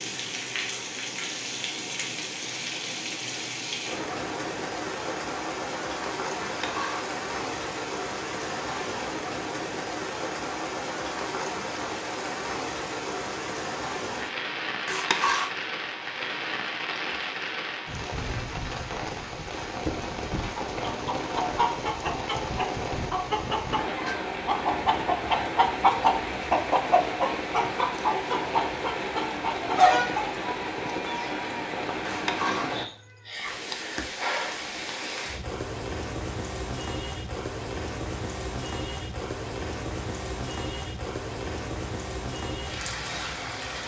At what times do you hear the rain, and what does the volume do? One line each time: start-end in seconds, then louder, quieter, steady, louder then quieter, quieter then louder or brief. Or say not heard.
0.0-43.8 steady.